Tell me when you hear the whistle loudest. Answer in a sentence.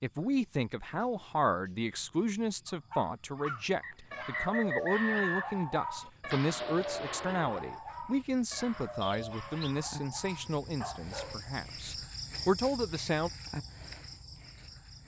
The volume of the whistle peaks at 5 seconds.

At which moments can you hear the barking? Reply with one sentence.
You can hear the barking from 2.7 to 11.5 s.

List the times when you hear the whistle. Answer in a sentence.
You can hear the whistle from 3.8 to 5.6 s and from 9.0 to 9.8 s.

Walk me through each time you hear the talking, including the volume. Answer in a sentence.
The talking can be heard from 0.0 to 13.3 s, at a steady volume.